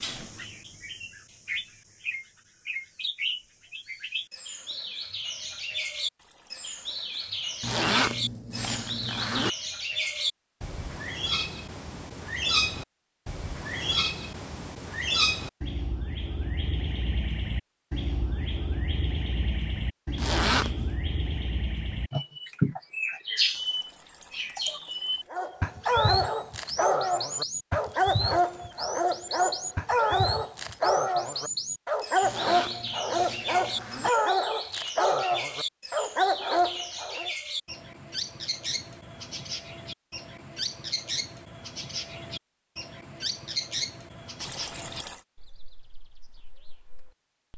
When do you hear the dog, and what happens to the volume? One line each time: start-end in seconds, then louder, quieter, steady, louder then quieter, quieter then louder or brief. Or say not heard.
25.3-37.3 steady.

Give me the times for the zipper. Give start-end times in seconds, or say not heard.
7.6-9.5, 20.1-20.9, 32.2-34.1.